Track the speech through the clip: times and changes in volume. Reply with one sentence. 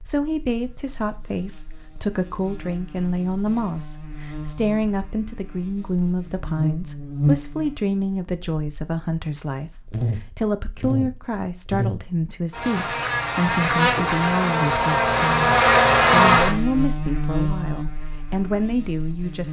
You can hear the speech from 0.1 to 19.4 s, at a steady volume.